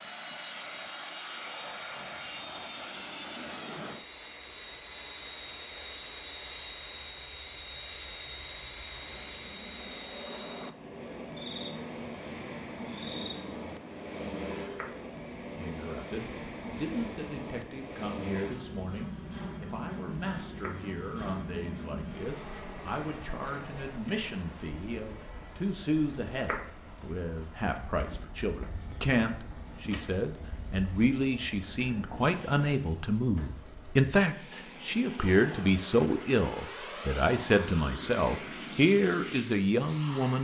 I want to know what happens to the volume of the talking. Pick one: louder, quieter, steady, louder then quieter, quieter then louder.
louder.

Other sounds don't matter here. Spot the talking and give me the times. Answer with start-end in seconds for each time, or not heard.
15.6-40.3.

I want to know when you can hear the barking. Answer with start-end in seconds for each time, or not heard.
not heard.